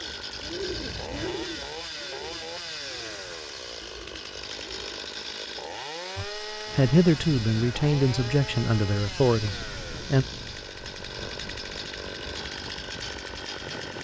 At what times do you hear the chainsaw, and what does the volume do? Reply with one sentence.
You can hear the chainsaw from 0.0 to 14.0 s, at a steady volume.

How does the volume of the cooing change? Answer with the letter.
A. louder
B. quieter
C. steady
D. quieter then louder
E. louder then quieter
B.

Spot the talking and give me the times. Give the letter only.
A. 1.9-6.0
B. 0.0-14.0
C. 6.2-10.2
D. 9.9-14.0
C.